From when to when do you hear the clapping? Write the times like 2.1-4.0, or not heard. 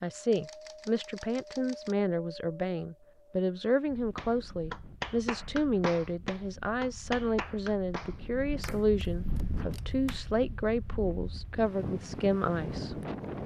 4.2-10.2.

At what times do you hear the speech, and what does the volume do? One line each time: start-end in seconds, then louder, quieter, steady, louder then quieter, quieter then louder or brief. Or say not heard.
0.0-12.9 steady.